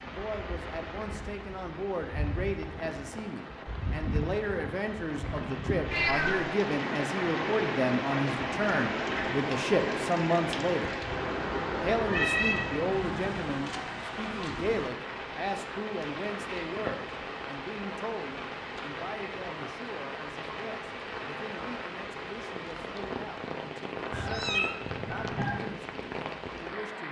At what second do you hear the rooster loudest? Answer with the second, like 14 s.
25 s.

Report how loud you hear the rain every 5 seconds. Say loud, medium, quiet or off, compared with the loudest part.
medium, loud, loud, medium, medium, medium.